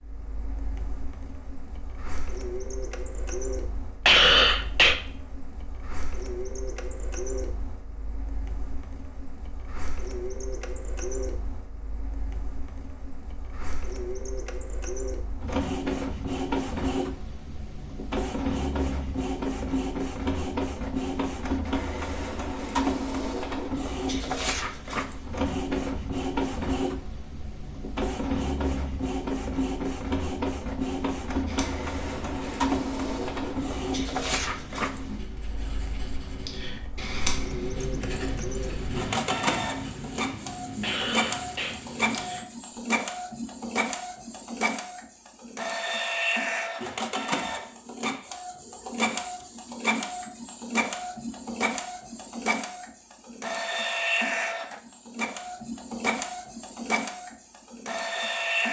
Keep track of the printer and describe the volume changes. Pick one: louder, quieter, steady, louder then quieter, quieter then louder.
louder.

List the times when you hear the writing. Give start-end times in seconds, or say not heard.
31.4-42.5.